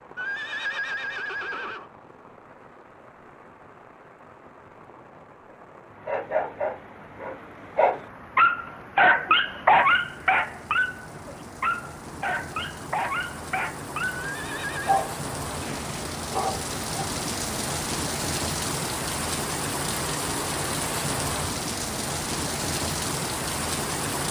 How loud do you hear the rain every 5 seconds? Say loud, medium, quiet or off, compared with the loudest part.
quiet, quiet, medium, loud, loud.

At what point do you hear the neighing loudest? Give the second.
1 s.